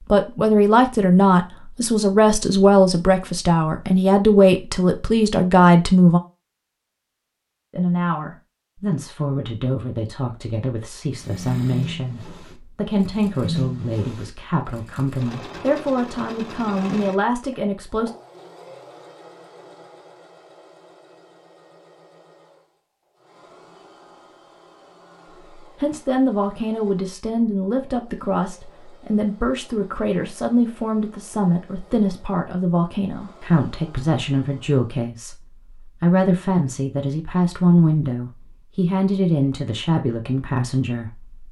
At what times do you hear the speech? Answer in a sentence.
The speech can be heard from 0.1 to 6.2 s, from 7.7 to 18.1 s and from 25.8 to 41.4 s.